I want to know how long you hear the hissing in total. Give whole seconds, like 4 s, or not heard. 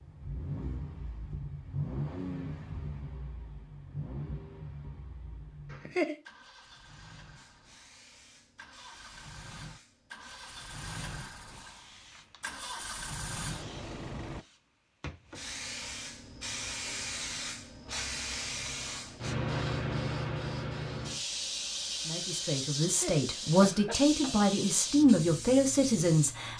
19 s.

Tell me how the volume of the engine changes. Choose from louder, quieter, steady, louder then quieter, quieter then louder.
quieter then louder.